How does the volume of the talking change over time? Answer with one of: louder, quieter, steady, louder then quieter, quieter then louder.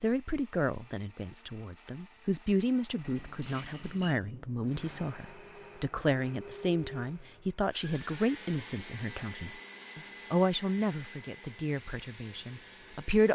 steady.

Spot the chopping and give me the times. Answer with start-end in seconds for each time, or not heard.
not heard.